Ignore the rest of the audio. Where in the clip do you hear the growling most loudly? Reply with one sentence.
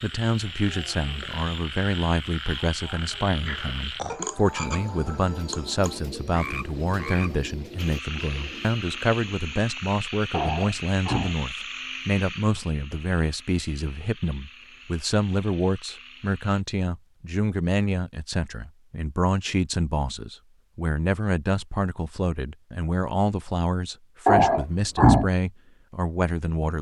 The volume of the growling peaks at 25 seconds.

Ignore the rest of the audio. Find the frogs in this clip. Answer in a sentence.
You can hear the frogs from 0.0 to 16.6 s.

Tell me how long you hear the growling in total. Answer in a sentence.
You can hear the growling for 4 seconds altogether.